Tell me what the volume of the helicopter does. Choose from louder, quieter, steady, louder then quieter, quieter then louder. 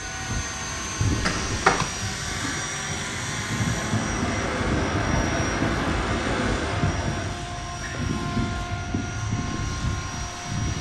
steady.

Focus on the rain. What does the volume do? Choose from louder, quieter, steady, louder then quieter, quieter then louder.
quieter.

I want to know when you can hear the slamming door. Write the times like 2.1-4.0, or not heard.
1.2-1.9.